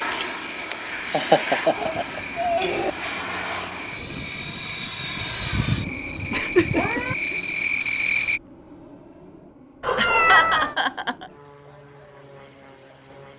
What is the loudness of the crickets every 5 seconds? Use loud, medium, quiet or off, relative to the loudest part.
medium, loud, off.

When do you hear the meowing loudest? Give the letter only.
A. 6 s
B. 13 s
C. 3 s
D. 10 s
D.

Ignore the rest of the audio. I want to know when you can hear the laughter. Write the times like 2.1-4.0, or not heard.
1.1-2.2, 6.3-7.3, 9.9-11.3.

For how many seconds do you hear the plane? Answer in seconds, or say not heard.
13 s.